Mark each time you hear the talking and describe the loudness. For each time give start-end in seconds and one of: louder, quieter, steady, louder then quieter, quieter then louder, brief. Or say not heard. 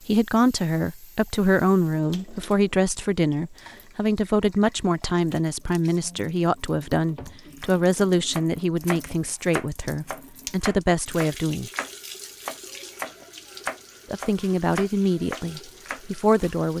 0.1-11.7 steady
14.1-16.7 brief.